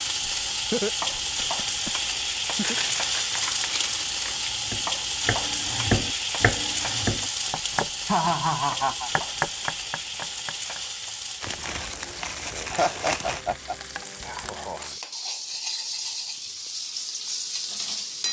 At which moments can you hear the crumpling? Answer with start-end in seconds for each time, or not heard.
2.6-4.6, 11.4-13.4.